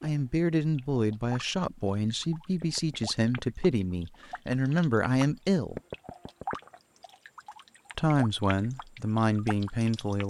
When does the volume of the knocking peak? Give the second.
6 s.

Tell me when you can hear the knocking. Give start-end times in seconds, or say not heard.
2.6-3.5, 5.8-6.6.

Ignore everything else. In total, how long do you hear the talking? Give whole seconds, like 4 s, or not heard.
8 s.